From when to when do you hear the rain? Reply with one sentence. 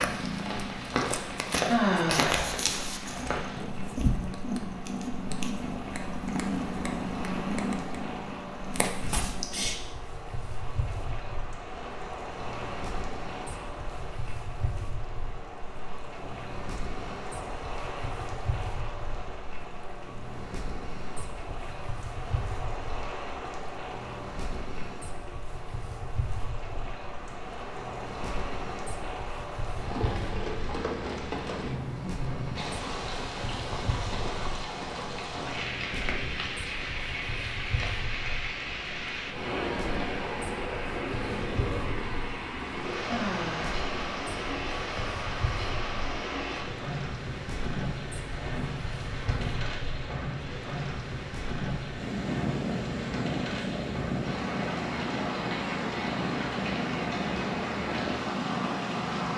The rain can be heard from 0.0 to 59.3 s.